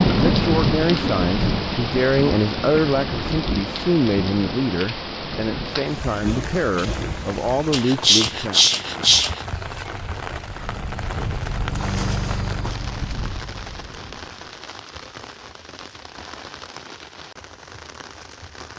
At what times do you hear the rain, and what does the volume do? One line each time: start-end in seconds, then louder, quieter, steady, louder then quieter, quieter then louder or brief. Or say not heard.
0.0-18.7 quieter.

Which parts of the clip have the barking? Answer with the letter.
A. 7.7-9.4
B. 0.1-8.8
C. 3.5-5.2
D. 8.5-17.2
A.